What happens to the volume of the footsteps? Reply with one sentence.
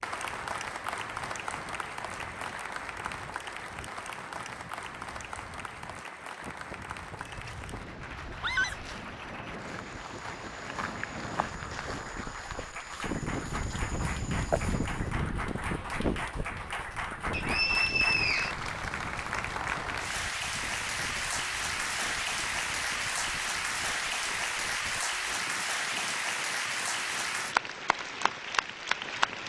The loudness of the footsteps goes up.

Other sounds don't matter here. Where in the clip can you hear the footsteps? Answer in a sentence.
You can hear the footsteps from 7.1 to 15.1 s.